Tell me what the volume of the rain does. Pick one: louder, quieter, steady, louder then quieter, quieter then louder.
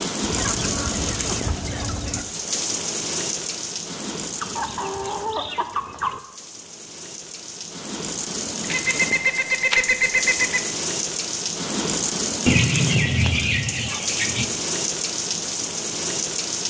quieter then louder.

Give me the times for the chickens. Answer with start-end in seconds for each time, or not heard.
0.2-2.2, 4.4-6.2, 8.7-10.6, 12.4-14.4.